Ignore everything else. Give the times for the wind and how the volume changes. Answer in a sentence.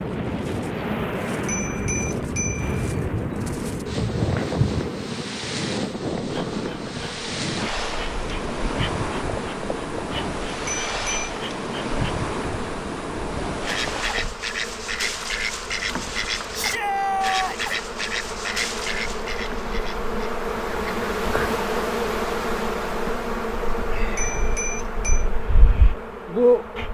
You can hear the wind from 0.0 to 14.3 s, at a steady volume.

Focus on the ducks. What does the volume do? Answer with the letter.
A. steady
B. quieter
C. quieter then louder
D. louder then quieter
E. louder
B.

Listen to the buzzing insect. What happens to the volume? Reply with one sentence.
The volume of the buzzing insect goes down, then up.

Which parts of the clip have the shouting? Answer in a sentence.
The shouting can be heard from 16.5 to 17.7 s.